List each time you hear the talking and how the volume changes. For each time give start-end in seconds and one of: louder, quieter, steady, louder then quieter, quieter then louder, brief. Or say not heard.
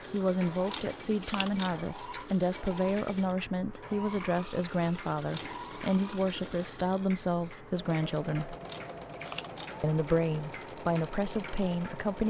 0.1-8.6 steady
9.8-12.2 brief.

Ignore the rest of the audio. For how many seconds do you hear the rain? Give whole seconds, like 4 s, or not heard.
not heard.